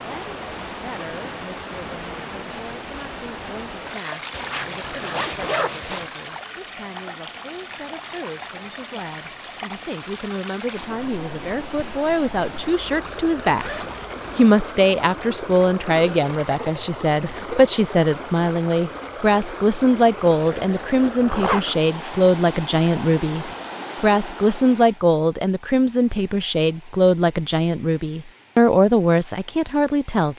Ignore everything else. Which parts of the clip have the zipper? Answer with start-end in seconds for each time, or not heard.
4.3-6.1, 12.6-14.3, 21.1-21.9.